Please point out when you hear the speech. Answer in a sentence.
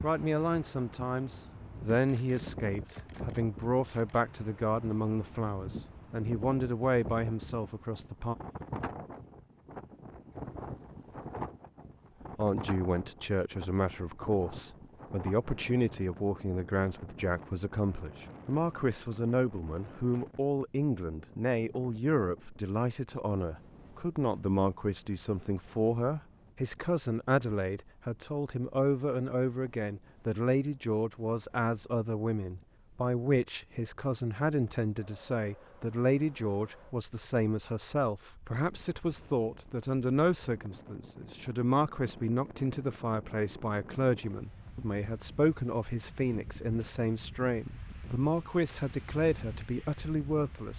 You can hear the speech from 0.0 to 8.3 s and from 12.3 to 50.7 s.